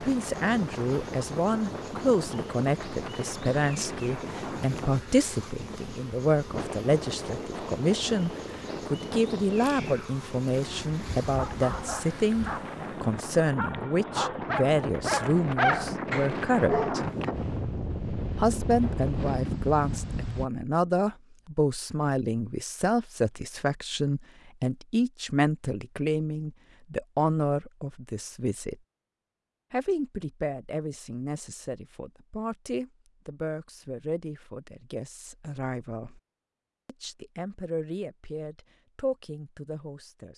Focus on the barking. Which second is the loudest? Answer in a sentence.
The volume of the barking peaks at 16 seconds.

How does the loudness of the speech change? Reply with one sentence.
The volume of the speech goes down.